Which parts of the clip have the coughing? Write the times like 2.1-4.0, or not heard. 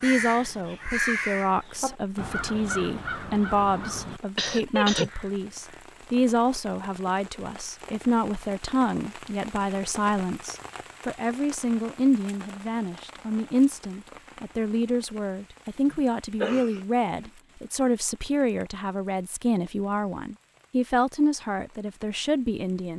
4.3-5.1, 15.8-17.3.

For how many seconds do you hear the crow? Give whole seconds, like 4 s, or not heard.
6 s.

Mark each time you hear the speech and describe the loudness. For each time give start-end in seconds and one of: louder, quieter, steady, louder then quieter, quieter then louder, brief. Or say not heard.
0.0-22.9 steady.